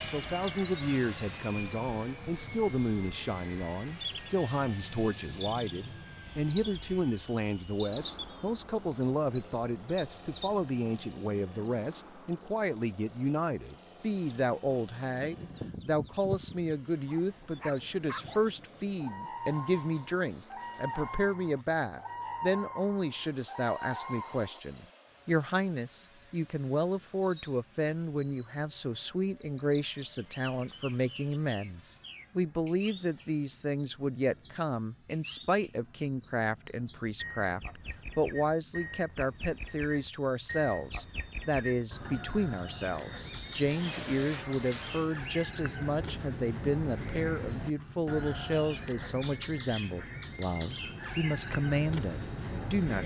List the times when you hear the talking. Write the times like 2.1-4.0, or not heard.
0.0-53.0.